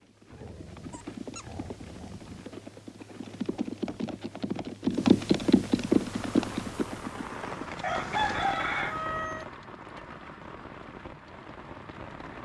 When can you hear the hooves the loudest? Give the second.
5 s.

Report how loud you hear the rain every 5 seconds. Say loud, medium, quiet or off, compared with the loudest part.
off, loud, medium.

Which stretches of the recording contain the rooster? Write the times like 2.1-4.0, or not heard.
7.8-9.4.